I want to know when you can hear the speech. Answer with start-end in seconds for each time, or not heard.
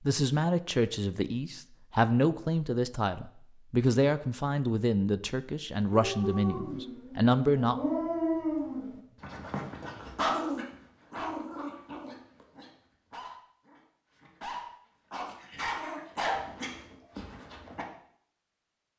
0.0-7.8.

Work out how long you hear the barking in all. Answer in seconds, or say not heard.
12 s.